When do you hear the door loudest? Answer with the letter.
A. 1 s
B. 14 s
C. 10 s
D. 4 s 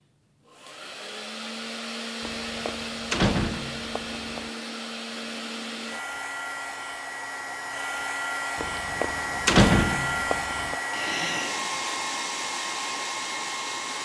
C.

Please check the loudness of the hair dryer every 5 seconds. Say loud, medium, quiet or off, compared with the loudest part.
medium, loud, loud.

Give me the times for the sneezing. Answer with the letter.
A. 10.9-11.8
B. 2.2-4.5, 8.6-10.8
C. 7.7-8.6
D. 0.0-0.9
A.